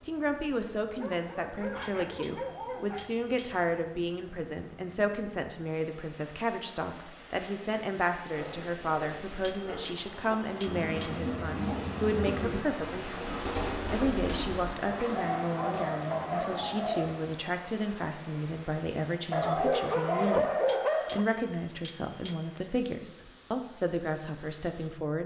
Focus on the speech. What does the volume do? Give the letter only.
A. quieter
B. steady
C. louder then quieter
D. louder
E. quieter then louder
B.